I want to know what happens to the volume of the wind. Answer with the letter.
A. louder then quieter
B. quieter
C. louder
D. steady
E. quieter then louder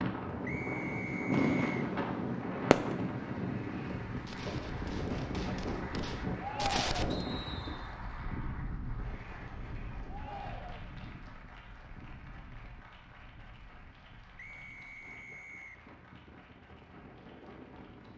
B.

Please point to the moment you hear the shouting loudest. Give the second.
7 s.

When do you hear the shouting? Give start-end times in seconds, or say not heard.
6.3-7.2, 10.1-10.9.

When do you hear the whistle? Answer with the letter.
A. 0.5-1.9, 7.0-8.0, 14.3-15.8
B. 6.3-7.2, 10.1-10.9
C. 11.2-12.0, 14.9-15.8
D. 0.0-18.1
A.